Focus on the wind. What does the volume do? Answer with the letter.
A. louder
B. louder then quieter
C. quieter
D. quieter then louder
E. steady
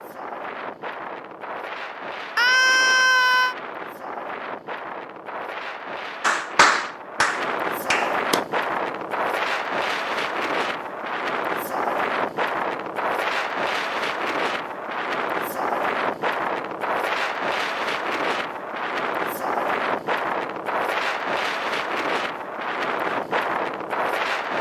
A.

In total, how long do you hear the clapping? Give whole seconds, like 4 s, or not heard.
2 s.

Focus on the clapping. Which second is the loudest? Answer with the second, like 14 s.
7 s.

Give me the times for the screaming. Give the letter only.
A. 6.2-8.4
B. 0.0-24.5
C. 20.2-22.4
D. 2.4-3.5
D.